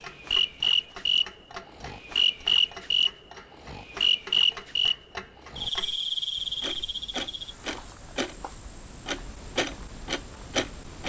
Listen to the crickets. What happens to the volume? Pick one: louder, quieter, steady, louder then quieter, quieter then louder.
quieter.